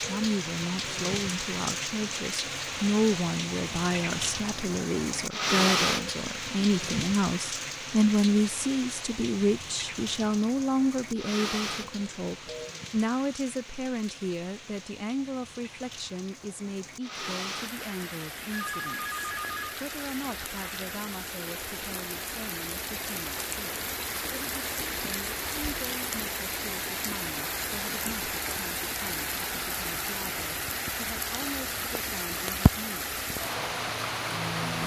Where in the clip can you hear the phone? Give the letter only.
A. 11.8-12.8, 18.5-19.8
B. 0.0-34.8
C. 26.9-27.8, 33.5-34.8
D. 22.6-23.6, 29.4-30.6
A.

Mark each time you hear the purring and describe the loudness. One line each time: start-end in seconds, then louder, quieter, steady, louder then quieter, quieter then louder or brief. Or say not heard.
not heard.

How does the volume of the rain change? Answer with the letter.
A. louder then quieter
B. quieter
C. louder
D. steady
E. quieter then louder
E.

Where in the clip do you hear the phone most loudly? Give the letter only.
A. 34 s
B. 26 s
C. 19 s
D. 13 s
C.